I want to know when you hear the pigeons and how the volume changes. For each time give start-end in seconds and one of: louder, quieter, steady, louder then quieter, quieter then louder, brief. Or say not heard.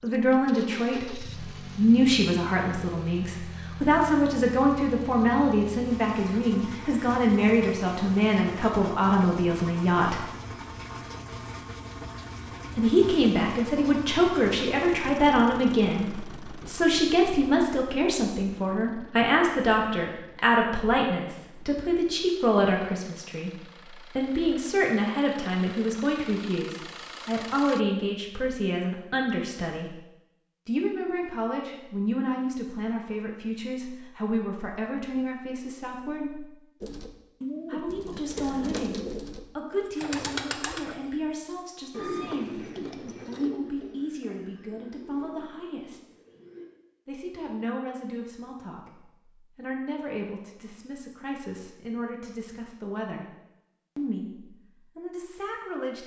36.8-46.6 quieter.